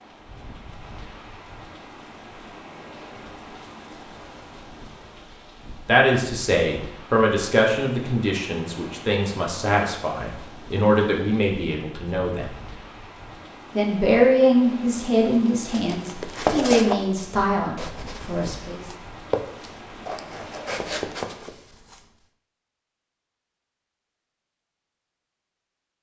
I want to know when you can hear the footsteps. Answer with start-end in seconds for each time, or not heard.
15.7-22.0.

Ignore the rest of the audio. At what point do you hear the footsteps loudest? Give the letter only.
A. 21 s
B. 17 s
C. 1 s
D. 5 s
B.